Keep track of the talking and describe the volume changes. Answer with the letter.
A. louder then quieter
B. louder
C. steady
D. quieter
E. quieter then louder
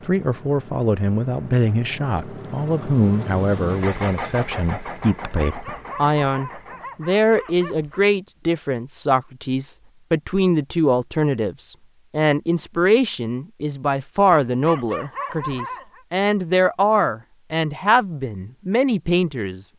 C.